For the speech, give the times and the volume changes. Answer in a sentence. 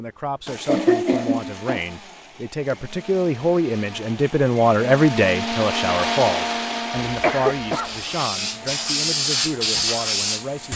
The speech can be heard from 0.0 to 10.7 s, getting louder then quieter.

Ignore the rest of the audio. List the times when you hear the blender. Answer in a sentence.
The blender can be heard from 0.0 to 10.7 s.